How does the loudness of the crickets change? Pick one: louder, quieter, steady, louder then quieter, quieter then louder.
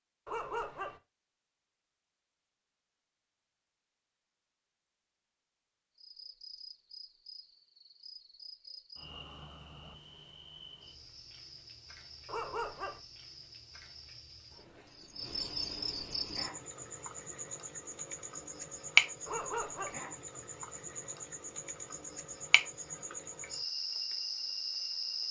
louder then quieter.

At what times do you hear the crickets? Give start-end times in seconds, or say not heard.
6.0-25.2.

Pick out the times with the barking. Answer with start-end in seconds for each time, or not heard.
0.2-1.0, 12.2-13.0, 19.2-20.0.